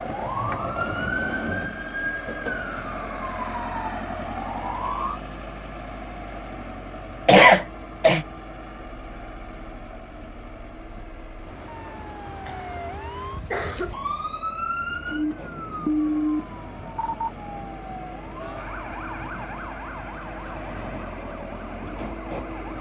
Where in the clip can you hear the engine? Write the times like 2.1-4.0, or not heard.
0.0-22.7.